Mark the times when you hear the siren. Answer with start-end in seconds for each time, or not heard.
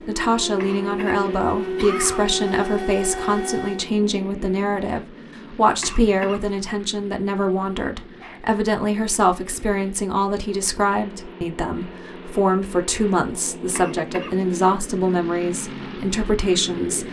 0.0-3.9.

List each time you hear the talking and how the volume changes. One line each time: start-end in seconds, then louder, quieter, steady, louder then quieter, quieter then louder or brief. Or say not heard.
0.1-17.0 steady.